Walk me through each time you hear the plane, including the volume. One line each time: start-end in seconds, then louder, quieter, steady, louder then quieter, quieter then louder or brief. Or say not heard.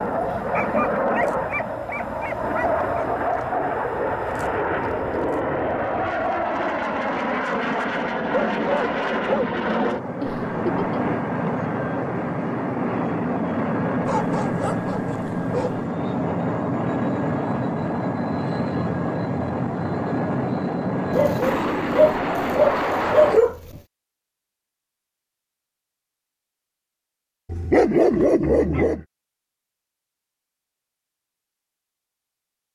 0.0-23.4 steady.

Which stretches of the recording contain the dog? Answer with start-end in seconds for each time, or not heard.
0.5-3.0, 8.3-9.5, 14.1-15.8, 21.1-23.8, 27.5-29.0.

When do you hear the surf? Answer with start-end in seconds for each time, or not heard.
not heard.